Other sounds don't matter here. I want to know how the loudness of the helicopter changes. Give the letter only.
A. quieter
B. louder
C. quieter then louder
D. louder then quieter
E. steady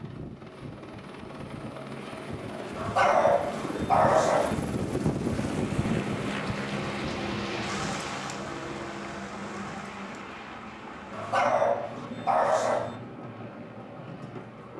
D.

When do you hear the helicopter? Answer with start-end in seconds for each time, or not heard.
0.0-14.7.